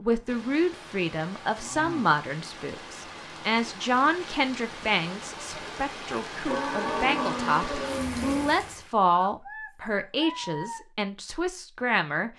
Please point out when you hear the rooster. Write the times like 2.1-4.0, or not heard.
9.2-10.8.